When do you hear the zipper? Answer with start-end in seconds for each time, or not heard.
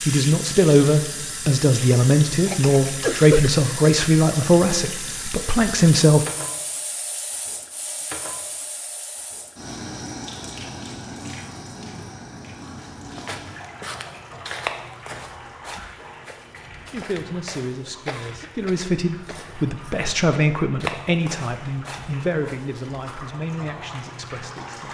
not heard.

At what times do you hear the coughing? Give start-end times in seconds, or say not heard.
2.5-3.5, 18.1-19.4.